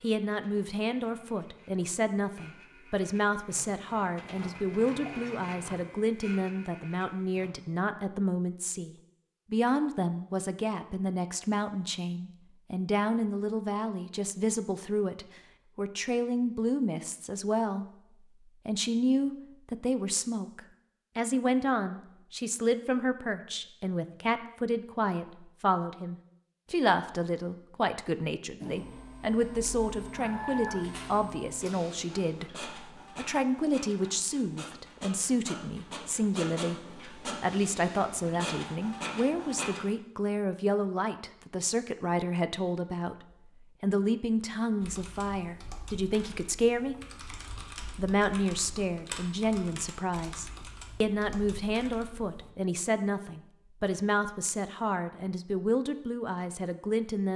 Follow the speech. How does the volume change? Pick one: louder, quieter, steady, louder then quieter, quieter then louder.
steady.